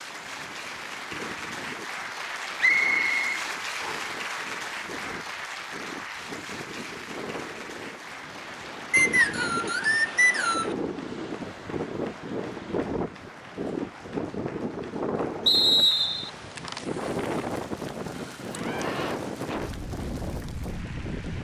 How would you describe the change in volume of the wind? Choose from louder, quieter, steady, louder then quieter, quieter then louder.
louder.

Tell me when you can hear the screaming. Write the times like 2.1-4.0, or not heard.
18.5-19.2.